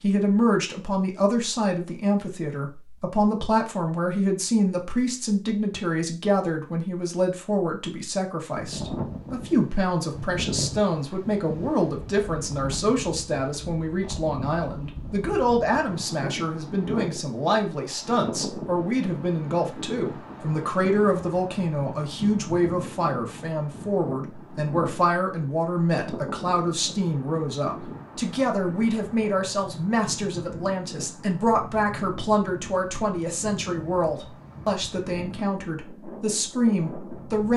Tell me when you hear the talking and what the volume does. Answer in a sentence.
You can hear the talking from 0.0 to 37.5 s, at a steady volume.